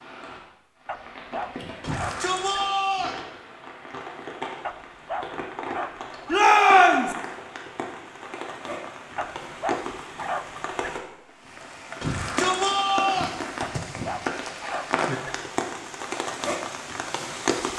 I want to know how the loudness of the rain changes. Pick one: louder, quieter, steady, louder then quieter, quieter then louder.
louder.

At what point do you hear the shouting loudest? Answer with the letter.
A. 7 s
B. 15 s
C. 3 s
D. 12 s
A.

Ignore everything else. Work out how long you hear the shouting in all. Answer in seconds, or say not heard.
4 s.